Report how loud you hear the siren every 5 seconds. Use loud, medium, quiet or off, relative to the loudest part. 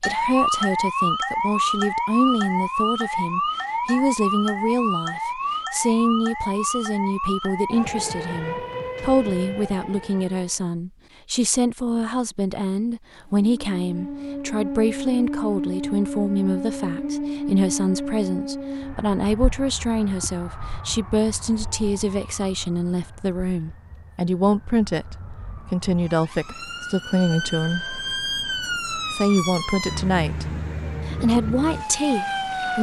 loud, medium, medium, medium, quiet, medium, medium.